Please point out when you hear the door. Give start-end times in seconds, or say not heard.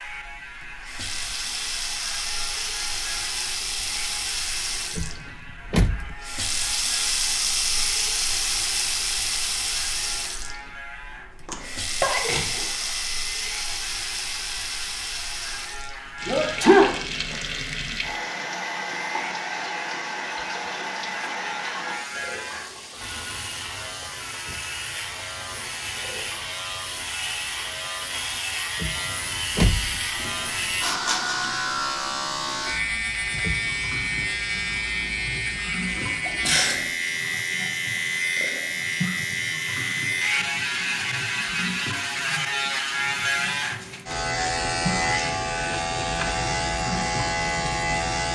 5.0-6.2, 28.8-30.0, 33.4-34.0.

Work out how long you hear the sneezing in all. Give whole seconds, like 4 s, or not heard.
3 s.